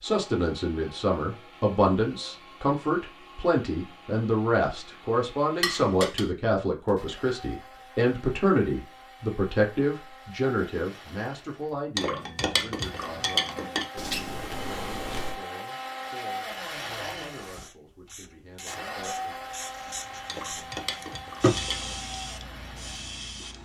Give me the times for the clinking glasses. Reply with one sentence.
The clinking glasses can be heard from 5.6 to 6.3 s, from 11.9 to 13.8 s and from 20.2 to 21.9 s.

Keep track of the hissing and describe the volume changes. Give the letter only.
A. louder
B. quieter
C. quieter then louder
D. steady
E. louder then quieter
E.